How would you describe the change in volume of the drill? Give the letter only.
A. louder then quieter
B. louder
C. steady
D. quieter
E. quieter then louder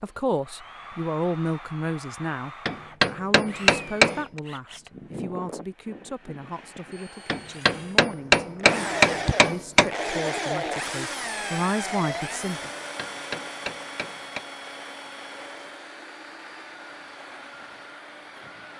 A.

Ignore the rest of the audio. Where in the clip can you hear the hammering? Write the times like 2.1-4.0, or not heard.
2.6-4.4, 7.2-9.9, 12.6-14.4.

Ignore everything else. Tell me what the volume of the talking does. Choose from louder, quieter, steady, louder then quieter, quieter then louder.
quieter then louder.